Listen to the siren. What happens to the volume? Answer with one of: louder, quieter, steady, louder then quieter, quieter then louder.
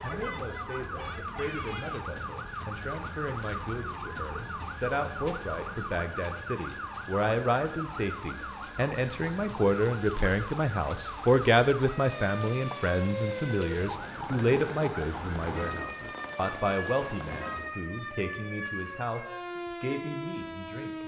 steady.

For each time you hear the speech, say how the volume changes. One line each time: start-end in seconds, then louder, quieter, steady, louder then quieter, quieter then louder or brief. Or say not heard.
0.0-21.0 louder then quieter.